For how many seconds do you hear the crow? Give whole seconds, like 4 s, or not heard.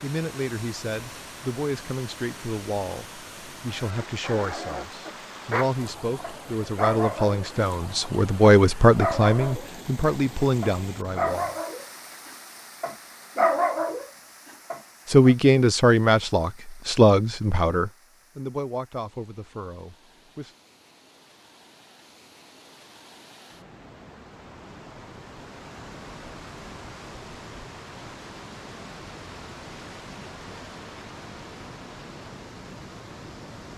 not heard.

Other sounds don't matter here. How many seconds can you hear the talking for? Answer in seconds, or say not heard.
17 s.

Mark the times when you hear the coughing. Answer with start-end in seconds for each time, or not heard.
not heard.